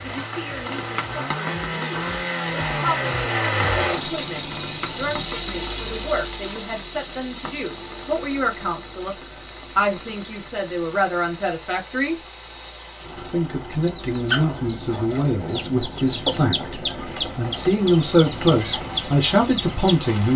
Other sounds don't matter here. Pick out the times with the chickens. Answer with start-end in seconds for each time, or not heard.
13.8-20.0.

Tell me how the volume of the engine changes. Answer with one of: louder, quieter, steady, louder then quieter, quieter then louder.
quieter.